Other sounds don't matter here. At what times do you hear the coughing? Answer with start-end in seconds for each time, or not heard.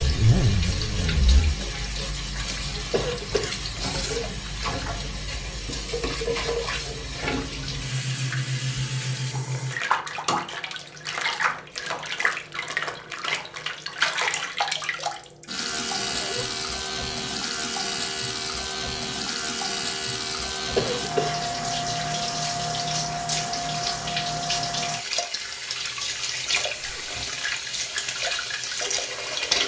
2.9-3.6, 20.8-21.4.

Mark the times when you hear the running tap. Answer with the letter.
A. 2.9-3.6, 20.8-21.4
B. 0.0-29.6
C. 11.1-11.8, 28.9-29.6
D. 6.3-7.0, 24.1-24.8
B.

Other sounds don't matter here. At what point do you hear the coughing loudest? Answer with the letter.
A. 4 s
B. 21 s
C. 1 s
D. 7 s
B.